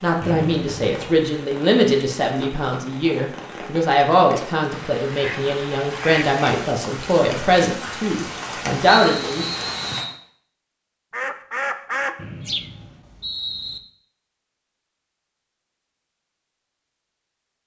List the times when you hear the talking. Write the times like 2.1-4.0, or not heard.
0.0-9.4.